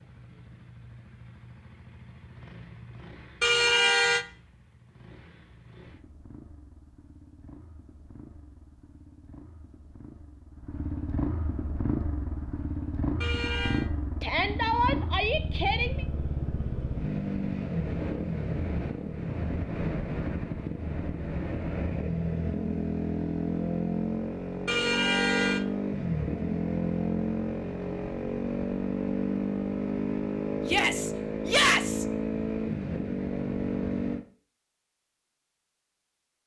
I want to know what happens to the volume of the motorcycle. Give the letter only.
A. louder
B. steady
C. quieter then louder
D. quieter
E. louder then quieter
A.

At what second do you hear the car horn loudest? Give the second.
4 s.